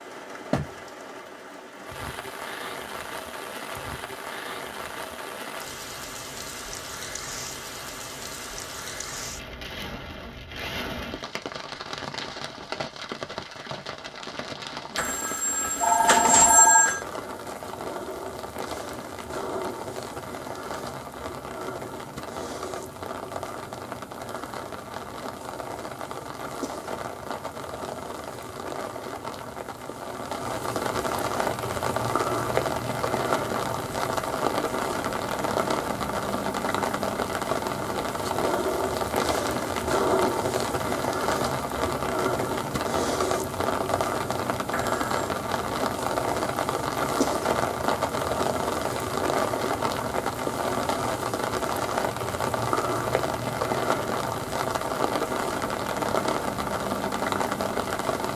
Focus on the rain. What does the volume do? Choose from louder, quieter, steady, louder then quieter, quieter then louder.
louder.